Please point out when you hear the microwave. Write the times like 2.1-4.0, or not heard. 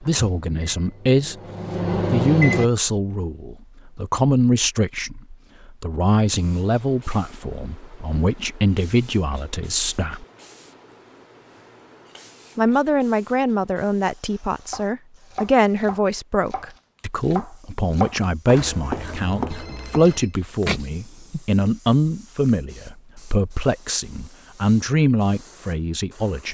0.0-2.7.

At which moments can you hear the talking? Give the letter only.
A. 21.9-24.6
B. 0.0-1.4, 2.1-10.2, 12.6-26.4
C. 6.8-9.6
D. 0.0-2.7
B.